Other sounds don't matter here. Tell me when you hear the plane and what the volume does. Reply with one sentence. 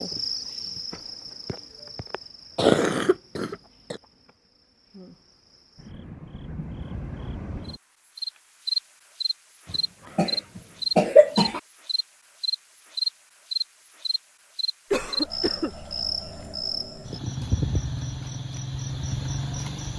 The plane can't be heard in this clip.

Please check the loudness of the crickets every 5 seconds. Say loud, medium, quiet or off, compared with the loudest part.
medium, medium, loud, loud.